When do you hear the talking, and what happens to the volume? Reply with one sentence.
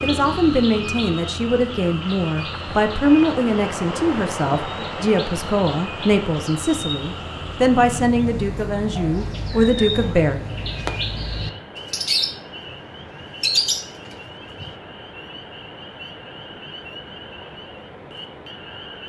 You can hear the talking from 0.0 to 10.4 s, at a steady volume.